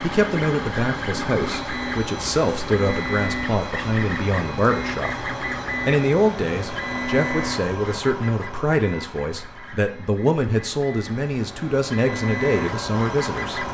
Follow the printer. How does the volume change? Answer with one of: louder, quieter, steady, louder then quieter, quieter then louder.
quieter then louder.